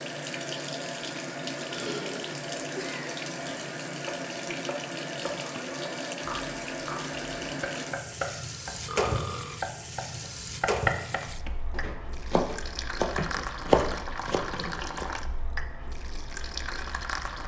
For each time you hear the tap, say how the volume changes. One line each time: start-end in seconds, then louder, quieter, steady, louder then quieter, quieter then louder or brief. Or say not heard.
0.0-17.4 steady.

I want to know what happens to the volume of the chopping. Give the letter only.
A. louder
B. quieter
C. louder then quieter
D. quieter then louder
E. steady
A.